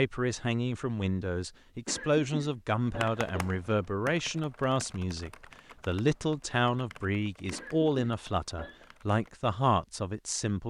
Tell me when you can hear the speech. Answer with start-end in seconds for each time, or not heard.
0.0-10.6.